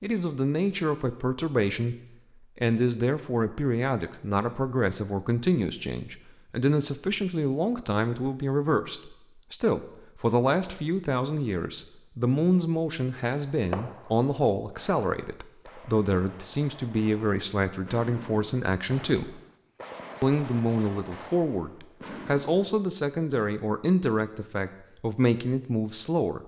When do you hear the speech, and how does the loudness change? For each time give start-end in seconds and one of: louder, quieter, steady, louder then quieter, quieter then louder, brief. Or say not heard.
0.0-1.9 brief
2.5-19.4 steady
20.2-26.4 steady.